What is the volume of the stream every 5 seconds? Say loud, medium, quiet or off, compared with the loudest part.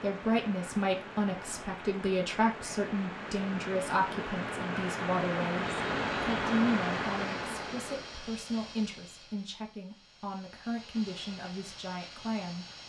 medium, loud, off.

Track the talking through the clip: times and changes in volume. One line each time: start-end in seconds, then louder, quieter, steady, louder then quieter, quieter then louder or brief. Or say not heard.
0.0-12.8 quieter.